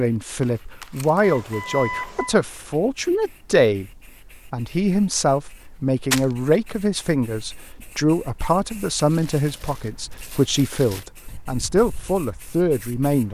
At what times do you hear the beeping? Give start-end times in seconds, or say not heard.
1.2-2.4.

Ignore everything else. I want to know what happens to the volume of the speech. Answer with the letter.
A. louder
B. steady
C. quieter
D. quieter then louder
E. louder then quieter
B.